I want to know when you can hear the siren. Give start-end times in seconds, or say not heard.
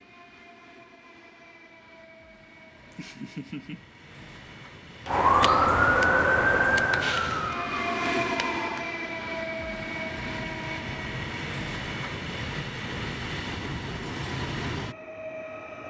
5.0-8.8.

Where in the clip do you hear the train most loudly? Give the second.
8 s.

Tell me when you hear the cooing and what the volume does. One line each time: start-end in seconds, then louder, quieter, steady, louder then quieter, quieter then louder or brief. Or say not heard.
not heard.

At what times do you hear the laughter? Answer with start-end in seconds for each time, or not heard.
2.8-3.8.